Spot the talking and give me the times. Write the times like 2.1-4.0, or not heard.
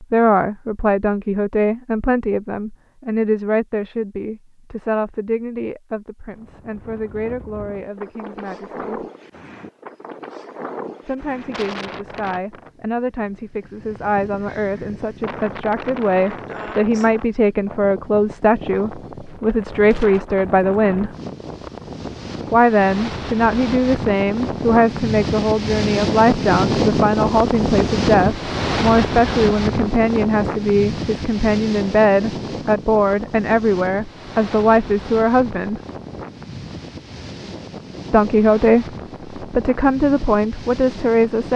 0.0-9.1, 11.1-21.1, 22.5-35.8, 38.1-41.5.